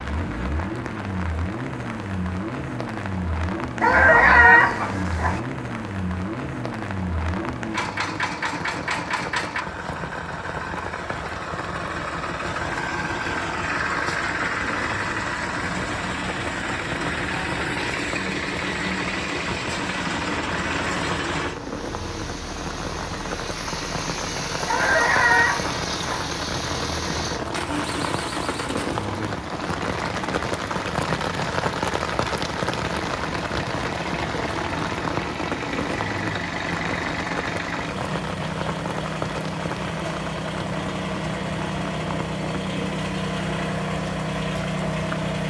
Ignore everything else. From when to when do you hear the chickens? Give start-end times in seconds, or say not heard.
3.8-5.4, 24.6-26.2.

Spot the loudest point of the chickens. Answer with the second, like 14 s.
4 s.